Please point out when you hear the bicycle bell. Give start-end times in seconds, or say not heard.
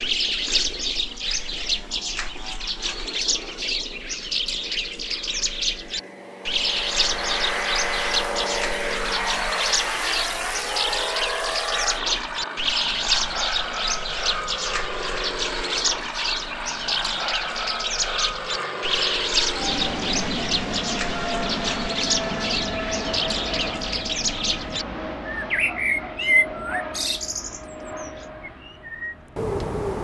not heard.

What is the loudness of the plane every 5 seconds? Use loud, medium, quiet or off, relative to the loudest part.
quiet, loud, loud, loud, loud, medium.